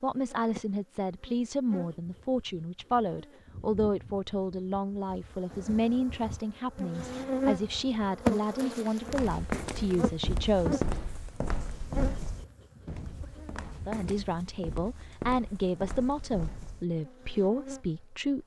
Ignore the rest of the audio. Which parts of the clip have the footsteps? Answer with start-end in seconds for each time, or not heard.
9.1-16.9.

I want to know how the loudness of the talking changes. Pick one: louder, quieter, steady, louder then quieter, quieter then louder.
steady.